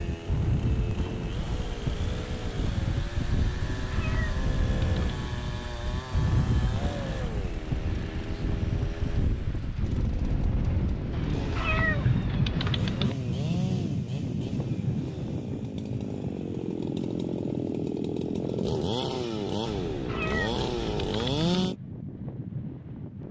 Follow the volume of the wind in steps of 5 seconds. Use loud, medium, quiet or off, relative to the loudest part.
loud, loud, loud, medium, medium.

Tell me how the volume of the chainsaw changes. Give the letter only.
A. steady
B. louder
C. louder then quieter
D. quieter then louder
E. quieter
B.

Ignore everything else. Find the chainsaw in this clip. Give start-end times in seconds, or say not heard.
0.0-21.8.